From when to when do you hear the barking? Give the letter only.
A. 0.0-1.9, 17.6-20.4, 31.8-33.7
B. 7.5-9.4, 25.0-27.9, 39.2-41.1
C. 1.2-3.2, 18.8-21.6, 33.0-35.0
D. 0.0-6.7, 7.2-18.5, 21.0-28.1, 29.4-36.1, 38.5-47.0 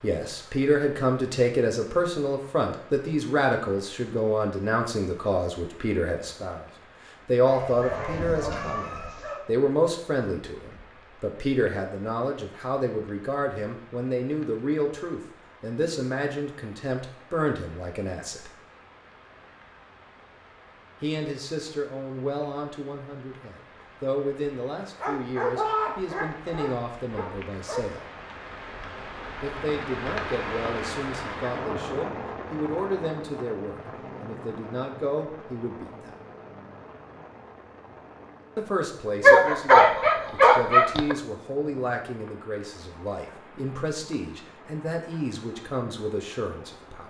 B.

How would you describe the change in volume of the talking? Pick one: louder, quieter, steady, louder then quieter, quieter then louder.
quieter.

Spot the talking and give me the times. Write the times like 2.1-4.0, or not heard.
0.0-6.7, 7.2-18.5, 21.0-28.1, 29.4-36.1, 38.5-47.0.